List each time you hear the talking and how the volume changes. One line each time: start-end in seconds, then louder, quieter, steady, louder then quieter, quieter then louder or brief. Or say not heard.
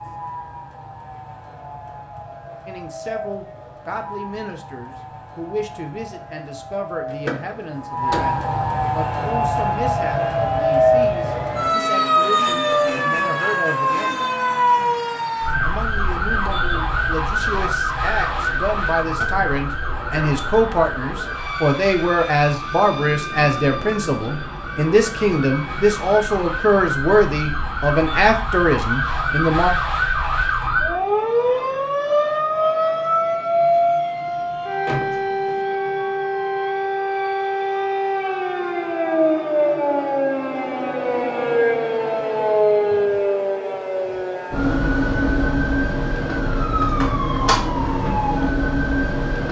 2.6-14.2 steady
15.6-29.7 louder.